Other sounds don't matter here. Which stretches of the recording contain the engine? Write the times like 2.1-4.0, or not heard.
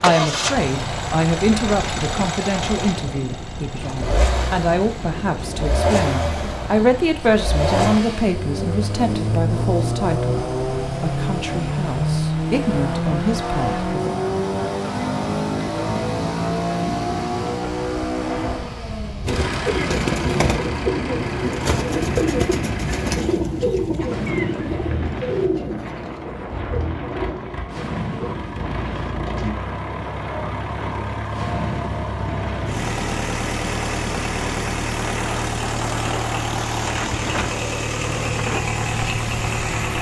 0.0-39.9.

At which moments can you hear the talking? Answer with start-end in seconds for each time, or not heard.
0.0-14.1.